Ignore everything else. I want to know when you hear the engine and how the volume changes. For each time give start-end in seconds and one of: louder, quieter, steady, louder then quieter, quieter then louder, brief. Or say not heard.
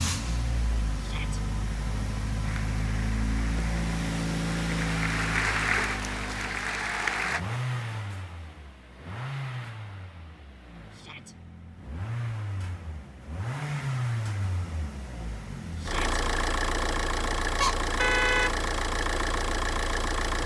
0.0-20.4 quieter then louder.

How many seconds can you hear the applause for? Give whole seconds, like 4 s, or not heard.
5 s.